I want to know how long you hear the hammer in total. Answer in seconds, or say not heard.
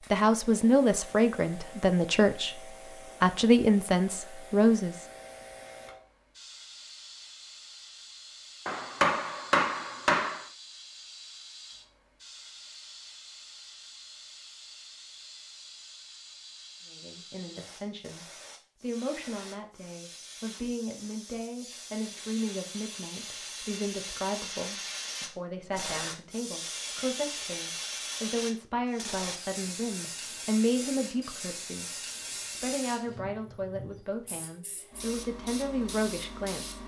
2 s.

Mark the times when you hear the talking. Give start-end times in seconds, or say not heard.
0.1-5.0, 16.9-36.8.